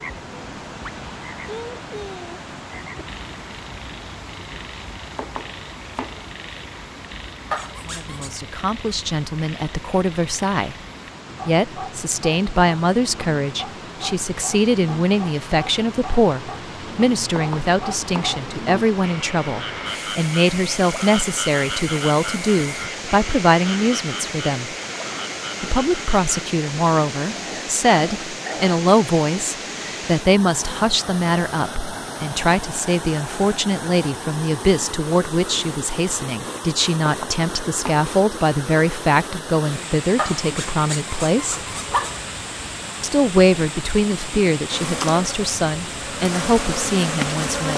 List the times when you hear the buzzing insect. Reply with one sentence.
The buzzing insect can be heard from 44.6 to 47.7 s.